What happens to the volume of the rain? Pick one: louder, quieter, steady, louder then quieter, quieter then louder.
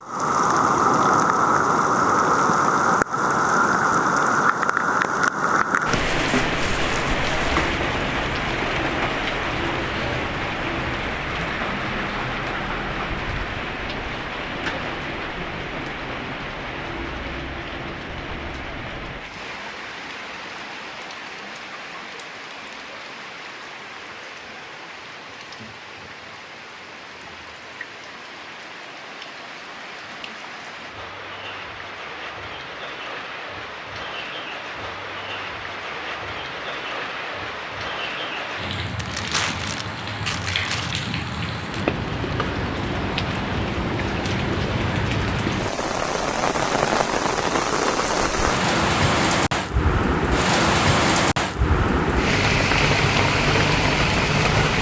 quieter then louder.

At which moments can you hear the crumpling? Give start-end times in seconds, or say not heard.
5.8-7.5, 39.0-41.0.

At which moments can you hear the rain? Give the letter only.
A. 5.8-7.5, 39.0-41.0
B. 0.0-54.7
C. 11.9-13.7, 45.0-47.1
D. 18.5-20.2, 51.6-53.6
B.